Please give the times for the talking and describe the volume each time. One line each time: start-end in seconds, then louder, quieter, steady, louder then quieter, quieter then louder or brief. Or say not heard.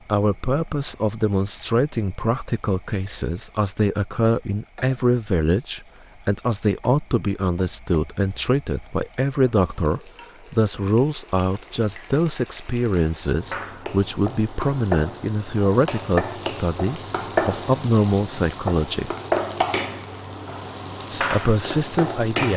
0.1-19.1 steady
21.1-22.5 brief.